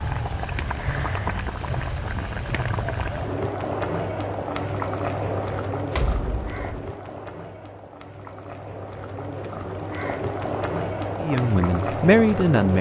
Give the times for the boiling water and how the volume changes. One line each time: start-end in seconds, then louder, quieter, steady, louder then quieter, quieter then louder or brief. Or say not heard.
0.0-12.7 quieter then louder.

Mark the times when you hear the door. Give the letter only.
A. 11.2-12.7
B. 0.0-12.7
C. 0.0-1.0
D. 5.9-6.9
D.